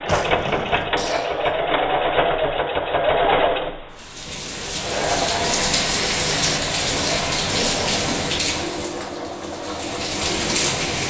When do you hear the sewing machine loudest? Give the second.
3 s.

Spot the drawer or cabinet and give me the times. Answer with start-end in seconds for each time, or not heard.
0.1-0.9.